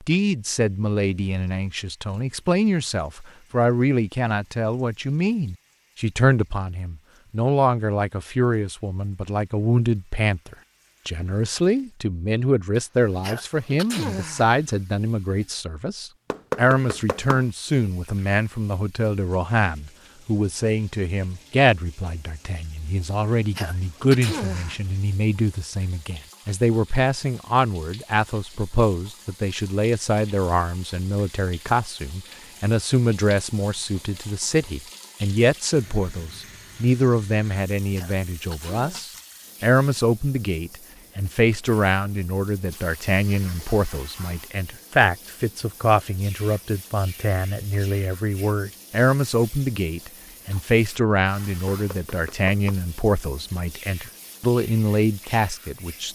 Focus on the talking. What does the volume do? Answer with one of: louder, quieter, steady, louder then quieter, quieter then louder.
steady.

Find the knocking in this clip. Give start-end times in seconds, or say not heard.
16.3-17.4, 51.7-52.8.